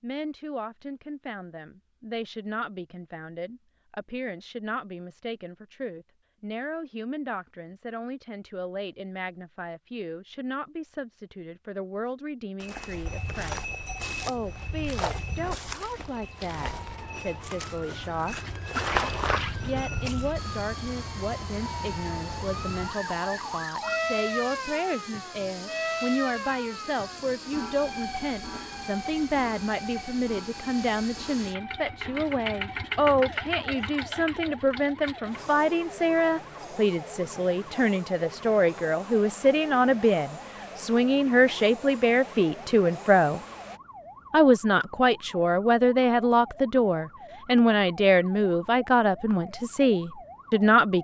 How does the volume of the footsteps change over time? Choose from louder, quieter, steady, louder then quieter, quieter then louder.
quieter then louder.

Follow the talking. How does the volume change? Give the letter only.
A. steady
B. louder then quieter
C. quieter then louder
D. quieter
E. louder
E.